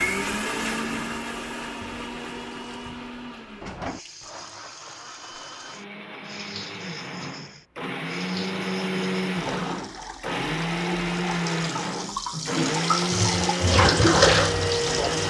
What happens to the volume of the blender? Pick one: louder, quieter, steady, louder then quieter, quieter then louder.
quieter then louder.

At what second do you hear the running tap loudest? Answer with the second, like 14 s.
14 s.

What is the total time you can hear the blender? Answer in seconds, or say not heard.
15 s.